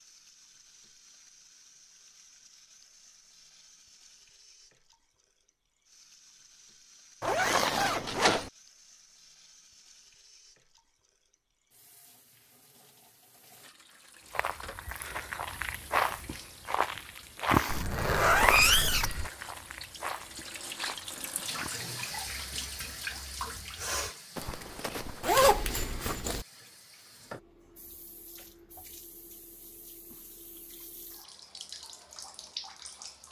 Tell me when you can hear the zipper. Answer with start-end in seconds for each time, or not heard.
7.2-8.5, 17.6-19.3, 25.2-26.4.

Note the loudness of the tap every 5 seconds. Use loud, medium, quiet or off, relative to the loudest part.
quiet, quiet, quiet, quiet, loud, quiet, medium.